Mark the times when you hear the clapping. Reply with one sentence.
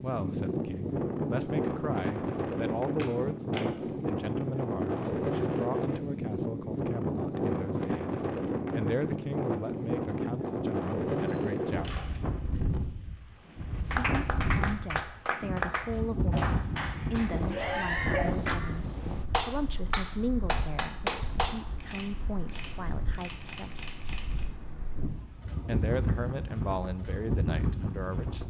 You can hear the clapping from 13.9 to 22.0 s.